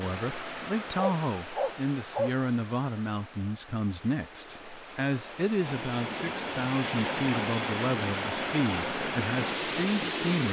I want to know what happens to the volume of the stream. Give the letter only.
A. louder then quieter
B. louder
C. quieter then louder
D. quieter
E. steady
C.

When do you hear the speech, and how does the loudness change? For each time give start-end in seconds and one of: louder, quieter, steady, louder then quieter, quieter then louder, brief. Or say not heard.
0.0-10.4 steady.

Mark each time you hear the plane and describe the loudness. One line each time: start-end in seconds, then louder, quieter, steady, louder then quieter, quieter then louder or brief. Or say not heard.
not heard.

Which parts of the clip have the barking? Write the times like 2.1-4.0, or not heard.
0.9-2.4.